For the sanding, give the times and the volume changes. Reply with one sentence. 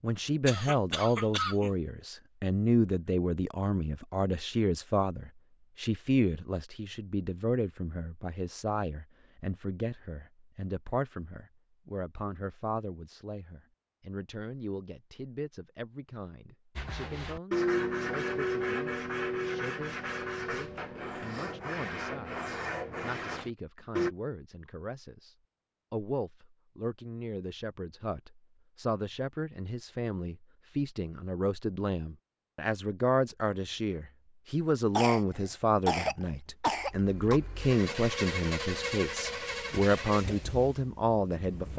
You can hear the sanding from 16.8 to 24.1 s, getting quieter.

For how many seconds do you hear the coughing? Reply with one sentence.
The coughing can be heard for 4 seconds in total.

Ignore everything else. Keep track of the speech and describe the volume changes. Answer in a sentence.
The volume of the speech goes down, then up.